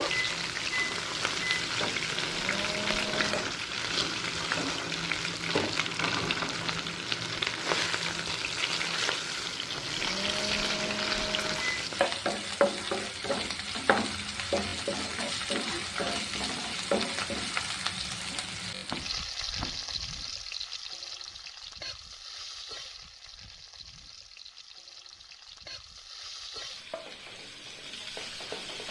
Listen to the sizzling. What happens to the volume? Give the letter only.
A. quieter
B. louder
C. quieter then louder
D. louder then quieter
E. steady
A.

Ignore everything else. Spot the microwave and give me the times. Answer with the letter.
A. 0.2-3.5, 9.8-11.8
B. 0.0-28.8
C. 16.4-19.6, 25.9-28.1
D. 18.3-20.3
A.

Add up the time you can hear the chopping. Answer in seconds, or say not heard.
2 s.